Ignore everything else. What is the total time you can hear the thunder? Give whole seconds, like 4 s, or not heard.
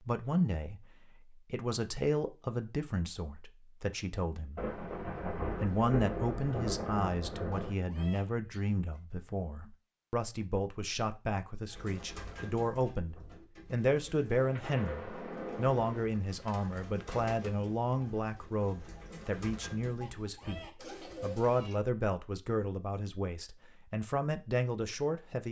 5 s.